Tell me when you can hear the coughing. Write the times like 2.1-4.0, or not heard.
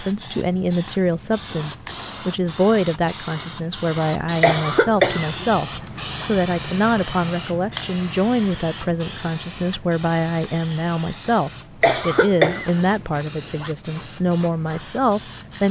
4.4-6.2, 11.8-13.7.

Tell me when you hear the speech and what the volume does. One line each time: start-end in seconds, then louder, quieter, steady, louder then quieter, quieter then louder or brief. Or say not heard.
0.0-15.6 steady.